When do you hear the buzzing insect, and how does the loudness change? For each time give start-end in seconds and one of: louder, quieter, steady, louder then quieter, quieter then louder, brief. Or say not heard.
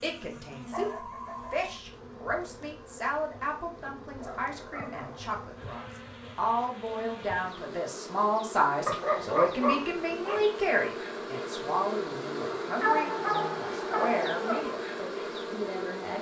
0.0-16.1 louder.